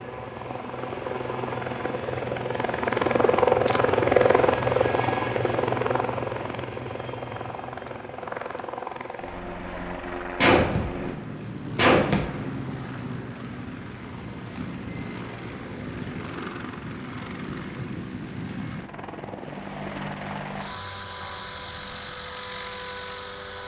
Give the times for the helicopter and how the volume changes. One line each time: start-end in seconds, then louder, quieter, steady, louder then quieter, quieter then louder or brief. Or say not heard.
0.0-23.6 quieter.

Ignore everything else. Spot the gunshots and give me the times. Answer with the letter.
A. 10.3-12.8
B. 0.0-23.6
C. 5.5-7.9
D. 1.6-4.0
A.